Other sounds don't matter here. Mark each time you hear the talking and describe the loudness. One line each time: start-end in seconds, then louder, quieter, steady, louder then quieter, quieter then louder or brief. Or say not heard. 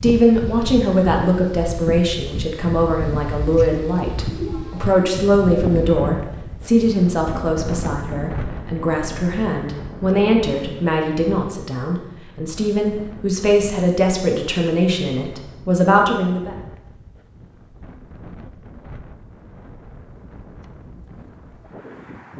0.0-16.6 steady.